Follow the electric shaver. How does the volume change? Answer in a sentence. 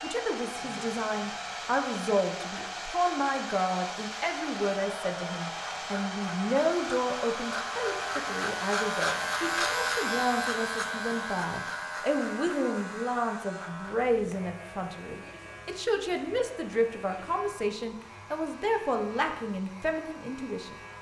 The loudness of the electric shaver goes up, then down.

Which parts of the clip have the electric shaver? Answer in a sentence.
You can hear the electric shaver from 0.0 to 20.9 s.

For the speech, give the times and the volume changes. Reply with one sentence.
The speech can be heard from 0.0 to 20.8 s, at a steady volume.